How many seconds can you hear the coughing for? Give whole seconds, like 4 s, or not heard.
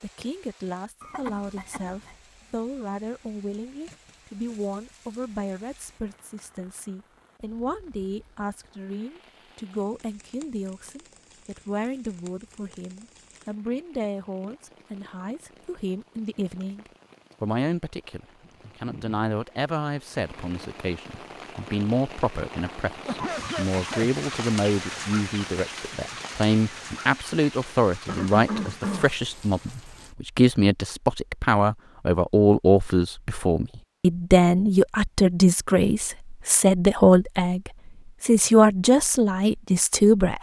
3 s.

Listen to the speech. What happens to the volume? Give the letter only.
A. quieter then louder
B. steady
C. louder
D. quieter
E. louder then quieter
C.